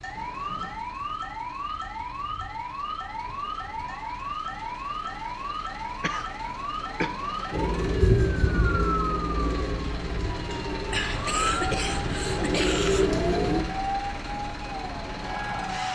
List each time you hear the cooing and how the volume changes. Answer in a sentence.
You can hear the cooing from 7.5 to 13.7 s, getting quieter then louder.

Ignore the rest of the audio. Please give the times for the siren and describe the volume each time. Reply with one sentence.
You can hear the siren from 0.0 to 15.8 s, at a steady volume.